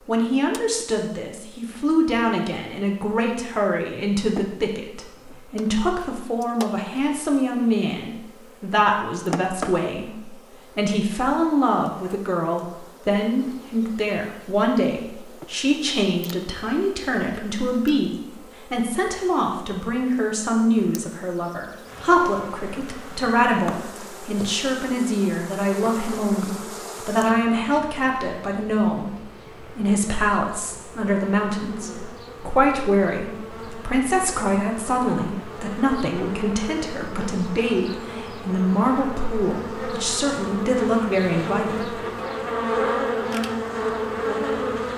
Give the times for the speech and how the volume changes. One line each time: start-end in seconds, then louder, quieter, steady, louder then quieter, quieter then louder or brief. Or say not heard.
0.1-42.0 steady.